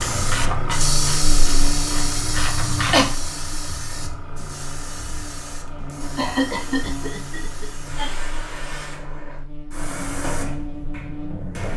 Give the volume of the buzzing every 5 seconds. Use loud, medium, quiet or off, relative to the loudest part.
loud, medium, loud.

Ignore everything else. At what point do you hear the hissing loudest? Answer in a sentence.
The volume of the hissing peaks at 1 second.